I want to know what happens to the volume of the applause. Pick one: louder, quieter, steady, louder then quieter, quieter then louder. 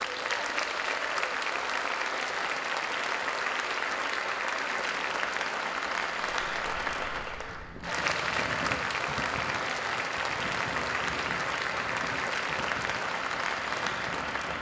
steady.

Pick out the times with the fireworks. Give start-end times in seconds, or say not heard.
not heard.